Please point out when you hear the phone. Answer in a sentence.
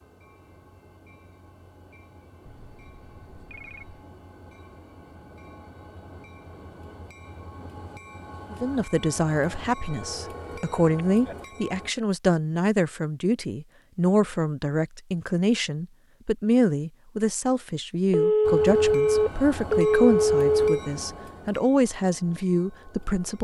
The phone can be heard from 2.5 to 4.0 s, from 10.0 to 11.3 s and from 18.1 to 20.8 s.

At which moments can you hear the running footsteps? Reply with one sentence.
The running footsteps can't be heard in this clip.